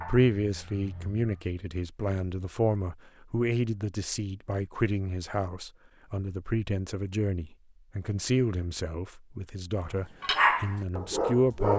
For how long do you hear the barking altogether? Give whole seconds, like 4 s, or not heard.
3 s.